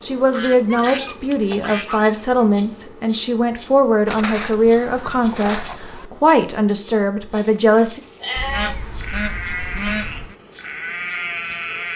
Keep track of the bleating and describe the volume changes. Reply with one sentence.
The loudness of the bleating goes down, then up.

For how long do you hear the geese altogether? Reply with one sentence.
You can hear the geese for 6 seconds altogether.